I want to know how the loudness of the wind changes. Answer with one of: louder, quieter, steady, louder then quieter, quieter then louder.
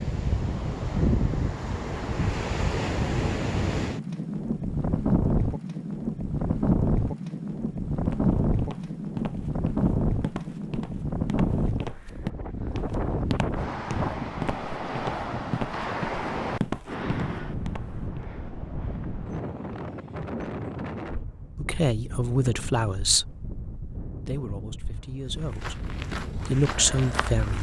quieter.